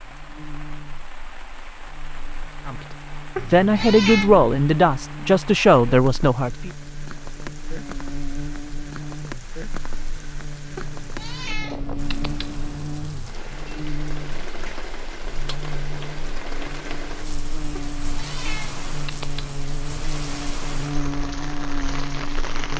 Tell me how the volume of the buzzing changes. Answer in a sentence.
The volume of the buzzing goes up.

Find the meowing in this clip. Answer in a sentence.
The meowing can be heard from 3.4 to 4.3 s, from 10.8 to 12.6 s and from 17.8 to 19.6 s.